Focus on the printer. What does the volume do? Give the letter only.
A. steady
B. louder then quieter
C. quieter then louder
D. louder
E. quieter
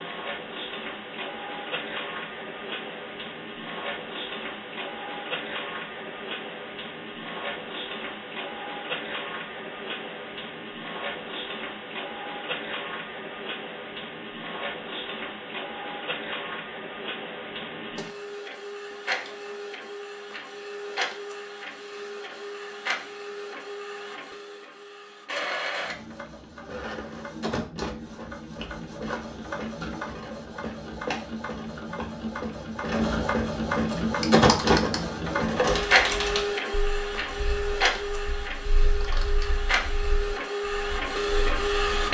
D.